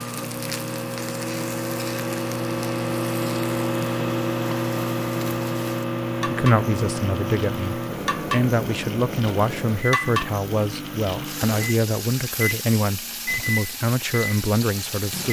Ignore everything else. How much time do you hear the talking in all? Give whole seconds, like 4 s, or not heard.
9 s.